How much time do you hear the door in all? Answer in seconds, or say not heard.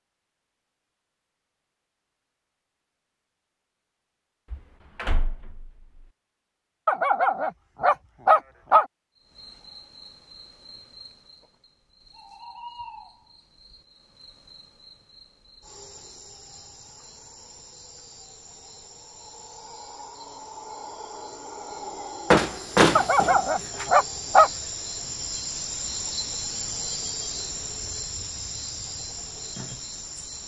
3 s.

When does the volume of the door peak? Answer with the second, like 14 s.
23 s.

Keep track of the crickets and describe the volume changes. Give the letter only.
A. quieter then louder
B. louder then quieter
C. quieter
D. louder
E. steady
D.